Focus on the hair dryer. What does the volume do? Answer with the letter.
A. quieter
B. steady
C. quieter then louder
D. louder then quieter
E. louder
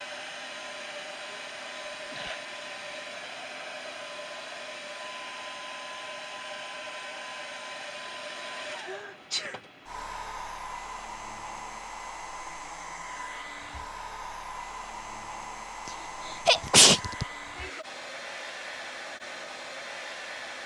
B.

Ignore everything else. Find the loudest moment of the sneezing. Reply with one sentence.
The volume of the sneezing peaks at 17 seconds.